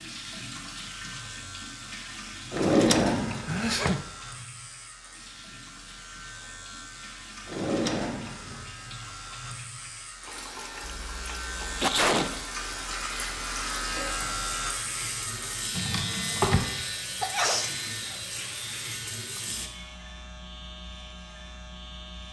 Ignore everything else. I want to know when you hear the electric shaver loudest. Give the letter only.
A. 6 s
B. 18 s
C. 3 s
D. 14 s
D.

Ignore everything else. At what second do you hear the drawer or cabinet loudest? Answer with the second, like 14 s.
3 s.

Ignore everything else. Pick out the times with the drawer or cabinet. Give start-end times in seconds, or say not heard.
2.5-4.0, 7.5-8.7, 15.8-16.7.